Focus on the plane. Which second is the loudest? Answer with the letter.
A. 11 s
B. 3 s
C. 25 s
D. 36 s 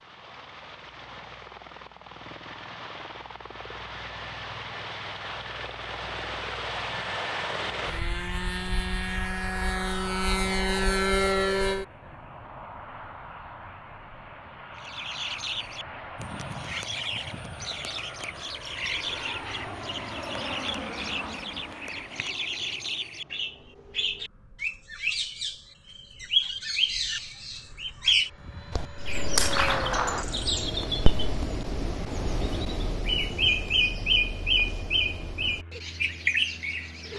A.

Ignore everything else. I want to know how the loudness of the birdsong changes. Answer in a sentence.
The volume of the birdsong goes up.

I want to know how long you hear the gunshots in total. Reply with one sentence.
You can hear the gunshots for 2 seconds altogether.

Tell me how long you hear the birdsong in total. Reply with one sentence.
You can hear the birdsong for 22 seconds altogether.